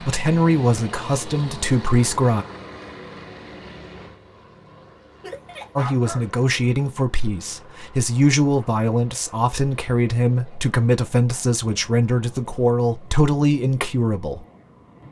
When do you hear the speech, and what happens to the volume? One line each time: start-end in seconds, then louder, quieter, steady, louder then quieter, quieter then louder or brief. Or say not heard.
0.0-2.5 brief
5.8-14.4 steady.